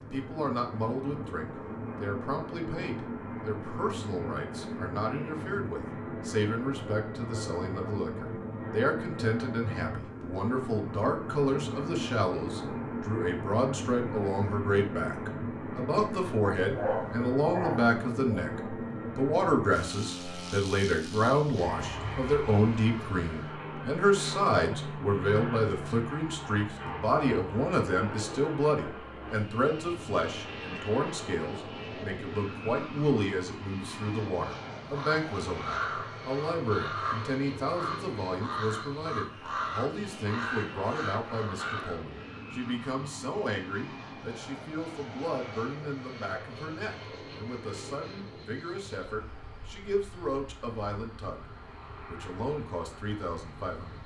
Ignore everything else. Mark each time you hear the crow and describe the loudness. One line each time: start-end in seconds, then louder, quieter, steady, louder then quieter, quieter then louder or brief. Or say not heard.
34.9-42.0 steady.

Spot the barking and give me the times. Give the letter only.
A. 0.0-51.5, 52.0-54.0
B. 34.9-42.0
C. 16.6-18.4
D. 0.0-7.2
C.